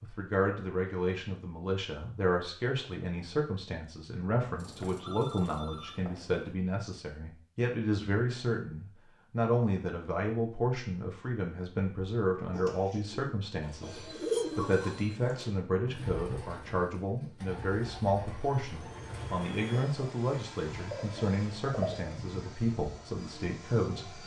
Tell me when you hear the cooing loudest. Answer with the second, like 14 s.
14 s.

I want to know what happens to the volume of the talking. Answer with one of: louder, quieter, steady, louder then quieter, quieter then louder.
steady.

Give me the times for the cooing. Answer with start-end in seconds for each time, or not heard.
12.5-22.1.